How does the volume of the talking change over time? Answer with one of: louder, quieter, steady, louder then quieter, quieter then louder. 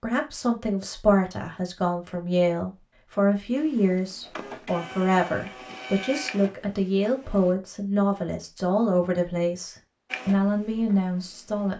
steady.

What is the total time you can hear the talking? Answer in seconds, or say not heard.
12 s.